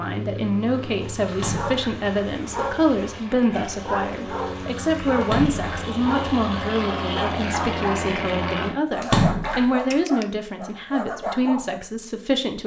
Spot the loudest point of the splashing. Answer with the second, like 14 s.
9 s.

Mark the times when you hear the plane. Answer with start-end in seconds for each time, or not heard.
0.0-8.8.